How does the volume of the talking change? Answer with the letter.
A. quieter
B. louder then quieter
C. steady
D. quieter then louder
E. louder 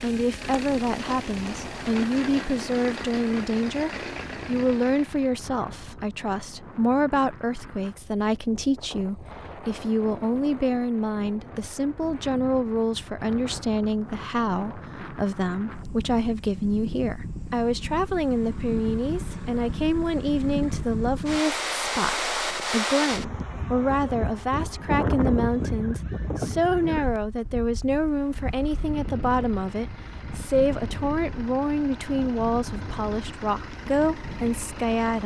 C.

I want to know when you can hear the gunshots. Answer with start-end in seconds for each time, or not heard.
not heard.